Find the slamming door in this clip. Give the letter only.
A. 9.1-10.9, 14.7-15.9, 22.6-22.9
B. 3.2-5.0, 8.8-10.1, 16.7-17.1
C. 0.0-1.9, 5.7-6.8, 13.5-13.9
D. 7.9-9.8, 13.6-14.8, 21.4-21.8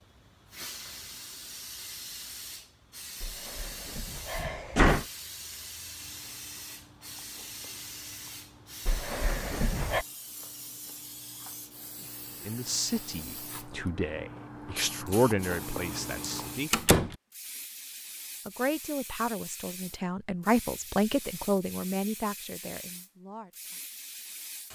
B.